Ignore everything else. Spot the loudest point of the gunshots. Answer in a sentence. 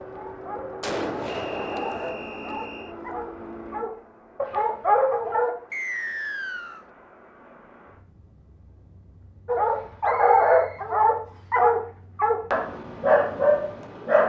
The volume of the gunshots peaks at 1 second.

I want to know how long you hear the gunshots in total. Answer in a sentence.
The gunshots can be heard for 2 seconds in total.